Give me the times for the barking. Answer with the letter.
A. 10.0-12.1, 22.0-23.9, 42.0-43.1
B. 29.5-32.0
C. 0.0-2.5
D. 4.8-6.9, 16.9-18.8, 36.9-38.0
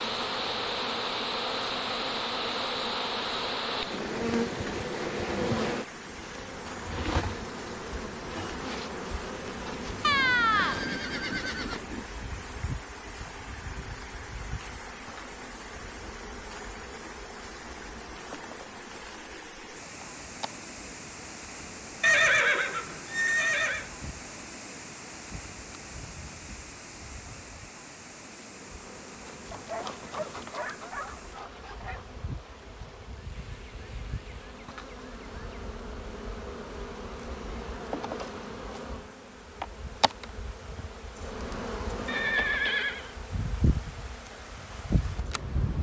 B.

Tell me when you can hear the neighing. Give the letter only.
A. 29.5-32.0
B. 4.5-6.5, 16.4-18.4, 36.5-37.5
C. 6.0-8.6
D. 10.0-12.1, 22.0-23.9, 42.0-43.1
D.